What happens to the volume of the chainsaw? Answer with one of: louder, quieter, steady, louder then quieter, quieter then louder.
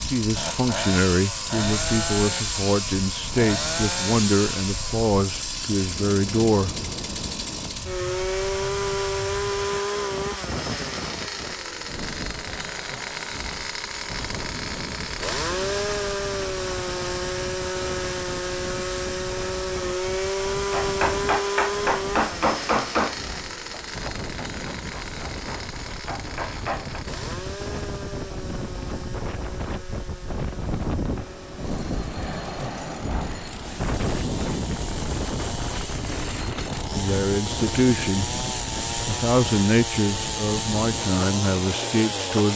quieter then louder.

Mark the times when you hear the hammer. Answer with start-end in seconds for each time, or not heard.
20.7-27.1.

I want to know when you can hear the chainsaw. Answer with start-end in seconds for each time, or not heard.
0.0-42.5.